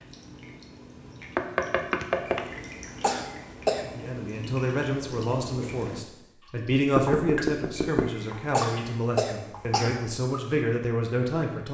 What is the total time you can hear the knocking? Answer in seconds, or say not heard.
2 s.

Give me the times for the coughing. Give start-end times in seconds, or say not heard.
2.5-3.9, 7.8-10.0.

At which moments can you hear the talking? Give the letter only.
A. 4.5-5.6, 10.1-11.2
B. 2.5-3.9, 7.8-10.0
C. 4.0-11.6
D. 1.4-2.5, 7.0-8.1
C.